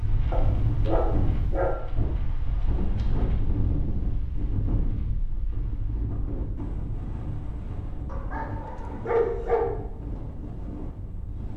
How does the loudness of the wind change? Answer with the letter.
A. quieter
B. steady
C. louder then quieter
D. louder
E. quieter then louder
A.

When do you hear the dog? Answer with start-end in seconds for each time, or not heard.
0.3-1.8, 8.1-9.8.